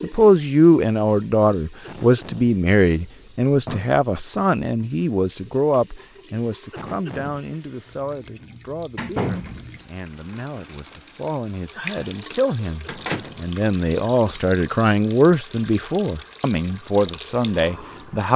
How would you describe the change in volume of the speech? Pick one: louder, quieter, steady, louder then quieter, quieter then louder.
quieter then louder.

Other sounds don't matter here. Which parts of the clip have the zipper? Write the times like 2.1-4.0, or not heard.
not heard.